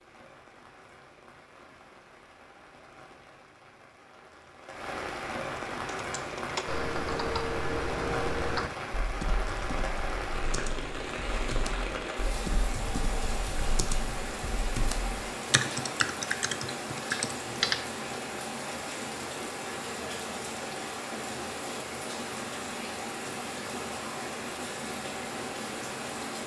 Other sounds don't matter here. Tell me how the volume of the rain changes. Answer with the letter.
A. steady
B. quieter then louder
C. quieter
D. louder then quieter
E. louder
E.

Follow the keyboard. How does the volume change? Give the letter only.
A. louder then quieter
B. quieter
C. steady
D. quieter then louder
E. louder
D.